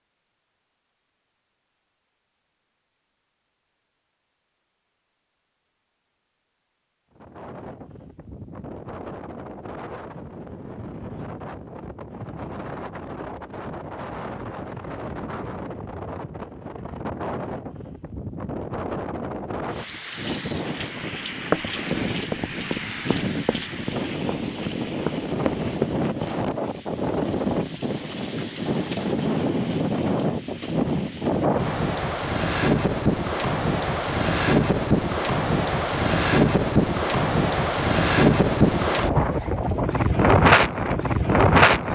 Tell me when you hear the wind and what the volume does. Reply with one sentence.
You can hear the wind from 7.2 to 41.8 s, getting louder.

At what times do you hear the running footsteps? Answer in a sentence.
You can hear the running footsteps from 21.4 to 26.4 s.